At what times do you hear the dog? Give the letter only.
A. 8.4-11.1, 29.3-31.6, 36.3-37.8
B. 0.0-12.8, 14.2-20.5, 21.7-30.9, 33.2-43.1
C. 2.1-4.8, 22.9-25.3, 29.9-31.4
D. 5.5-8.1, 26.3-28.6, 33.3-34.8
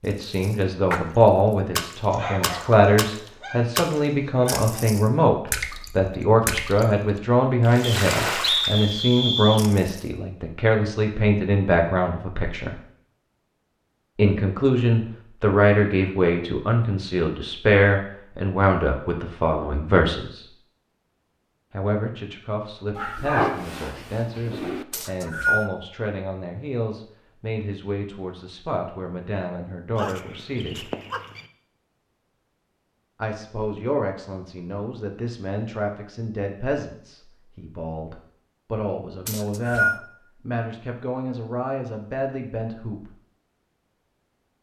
C.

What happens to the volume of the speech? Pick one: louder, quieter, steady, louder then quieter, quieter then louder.
quieter.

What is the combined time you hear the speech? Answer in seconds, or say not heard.
38 s.